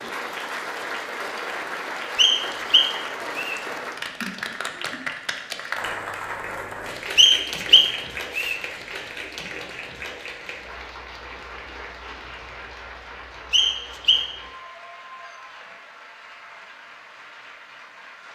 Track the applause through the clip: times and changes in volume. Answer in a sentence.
The applause can be heard from 0.0 to 18.3 s, getting quieter.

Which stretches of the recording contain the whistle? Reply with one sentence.
The whistle can be heard from 2.1 to 3.6 s, from 7.2 to 8.6 s and from 13.5 to 14.3 s.